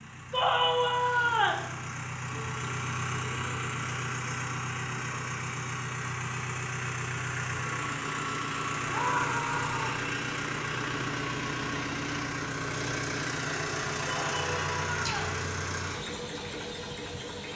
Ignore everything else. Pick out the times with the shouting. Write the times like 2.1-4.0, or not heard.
0.3-1.6, 8.8-10.1, 14.1-15.4.